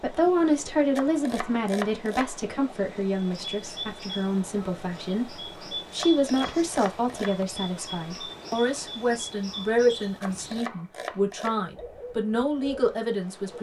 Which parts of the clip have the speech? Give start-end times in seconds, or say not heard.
0.0-13.5.